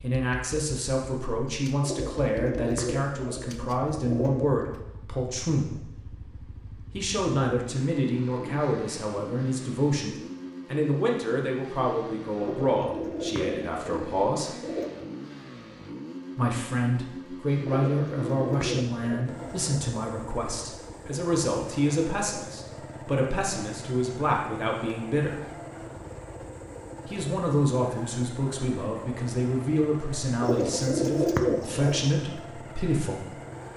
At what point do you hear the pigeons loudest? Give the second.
31 s.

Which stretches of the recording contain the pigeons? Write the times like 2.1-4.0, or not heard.
1.8-4.5, 12.4-14.9, 17.6-19.7, 30.4-32.0.